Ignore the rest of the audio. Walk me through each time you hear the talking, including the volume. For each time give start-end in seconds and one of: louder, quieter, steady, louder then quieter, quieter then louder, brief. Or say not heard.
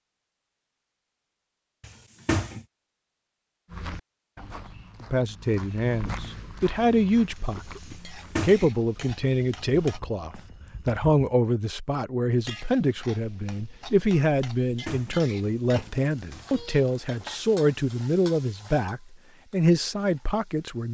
5.0-20.8 steady.